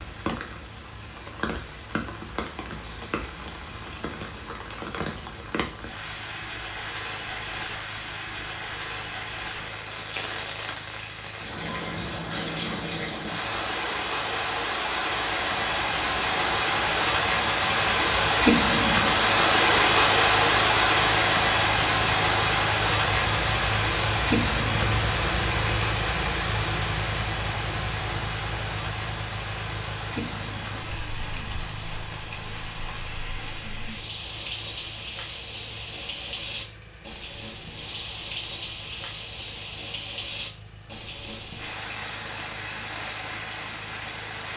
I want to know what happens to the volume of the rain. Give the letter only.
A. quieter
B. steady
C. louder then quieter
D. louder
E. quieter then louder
C.